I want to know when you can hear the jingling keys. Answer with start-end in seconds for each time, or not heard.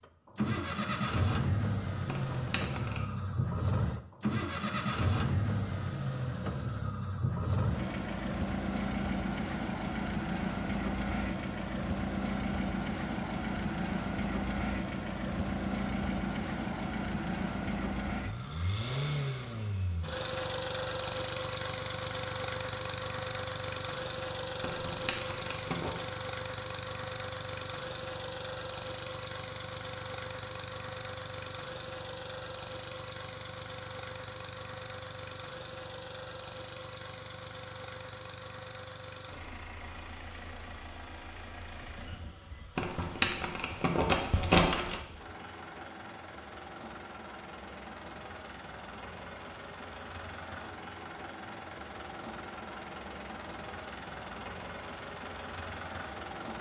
2.0-3.0, 24.6-26.0, 42.8-45.0.